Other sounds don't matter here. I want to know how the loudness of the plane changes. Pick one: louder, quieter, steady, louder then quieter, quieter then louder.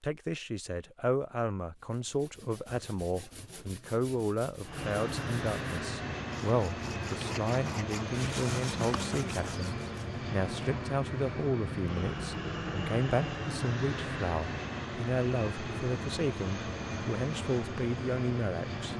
steady.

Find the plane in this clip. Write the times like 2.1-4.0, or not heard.
4.6-18.9.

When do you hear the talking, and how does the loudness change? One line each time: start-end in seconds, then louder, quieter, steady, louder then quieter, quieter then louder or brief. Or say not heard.
0.0-18.9 steady.